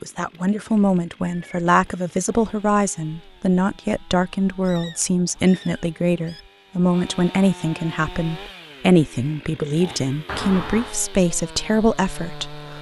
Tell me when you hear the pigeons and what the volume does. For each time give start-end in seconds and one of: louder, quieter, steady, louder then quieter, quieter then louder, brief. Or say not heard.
not heard.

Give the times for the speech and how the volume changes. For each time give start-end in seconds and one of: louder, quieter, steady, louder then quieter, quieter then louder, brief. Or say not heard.
0.0-12.7 steady.